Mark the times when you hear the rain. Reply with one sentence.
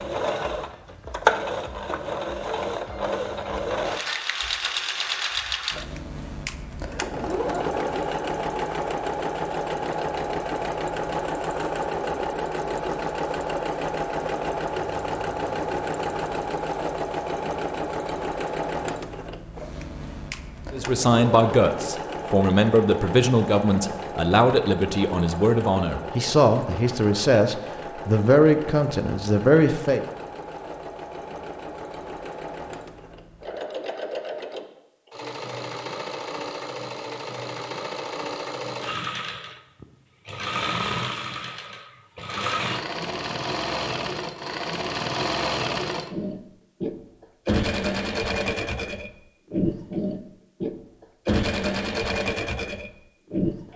You can't hear the rain here.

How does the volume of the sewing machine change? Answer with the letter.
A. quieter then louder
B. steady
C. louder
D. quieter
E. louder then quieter
A.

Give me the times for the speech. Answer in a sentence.
You can hear the speech from 20.7 to 30.1 s.